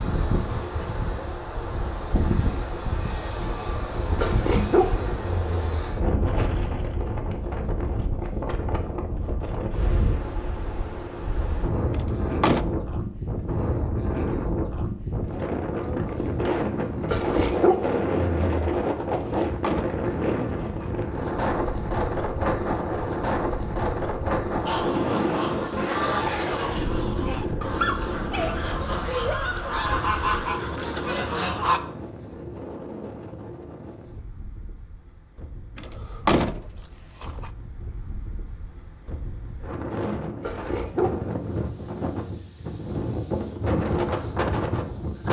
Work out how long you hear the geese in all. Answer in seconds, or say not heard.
7 s.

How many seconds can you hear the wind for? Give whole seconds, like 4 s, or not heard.
45 s.